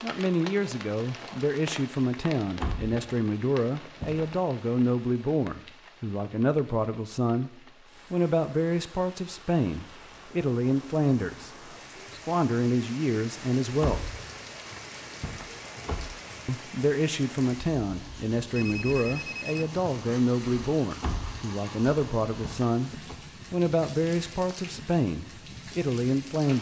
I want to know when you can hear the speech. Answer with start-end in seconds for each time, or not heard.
0.0-7.5, 8.1-14.2, 16.4-26.5.